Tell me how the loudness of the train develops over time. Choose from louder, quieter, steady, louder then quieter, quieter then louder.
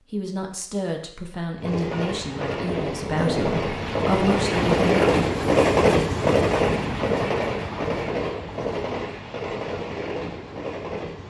louder then quieter.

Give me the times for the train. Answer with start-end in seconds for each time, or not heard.
1.6-11.2.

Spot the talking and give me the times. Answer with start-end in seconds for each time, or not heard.
0.1-5.2.